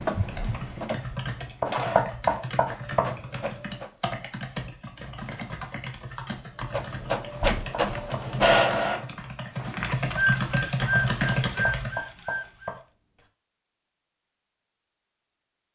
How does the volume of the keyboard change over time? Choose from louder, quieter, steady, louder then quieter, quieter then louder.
louder.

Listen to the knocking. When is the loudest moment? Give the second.
2 s.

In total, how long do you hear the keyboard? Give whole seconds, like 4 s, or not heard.
12 s.